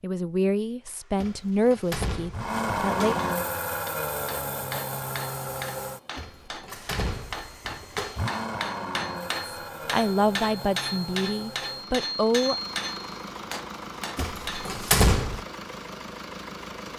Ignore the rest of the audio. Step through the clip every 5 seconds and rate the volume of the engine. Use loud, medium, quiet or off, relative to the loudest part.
loud, medium, medium, medium.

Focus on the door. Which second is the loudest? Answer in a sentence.
The volume of the door peaks at 15 seconds.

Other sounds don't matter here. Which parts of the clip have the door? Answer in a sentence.
You can hear the door from 1.1 to 3.2 s, from 6.2 to 8.3 s and from 14.2 to 15.4 s.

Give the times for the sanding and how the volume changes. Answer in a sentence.
The sanding can't be heard in this clip.